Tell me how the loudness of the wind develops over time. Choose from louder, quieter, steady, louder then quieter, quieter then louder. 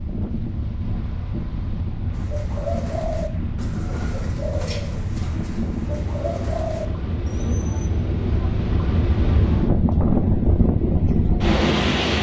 louder.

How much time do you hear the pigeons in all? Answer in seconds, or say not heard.
6 s.